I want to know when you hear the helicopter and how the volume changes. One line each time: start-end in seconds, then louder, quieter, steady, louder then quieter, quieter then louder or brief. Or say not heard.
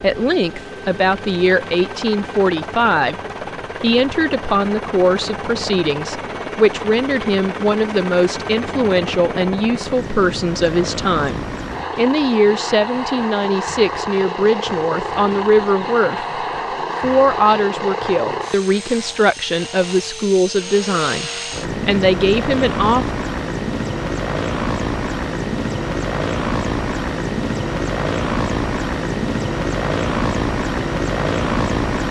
0.0-32.0 louder.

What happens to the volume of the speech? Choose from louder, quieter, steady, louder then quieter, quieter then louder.
steady.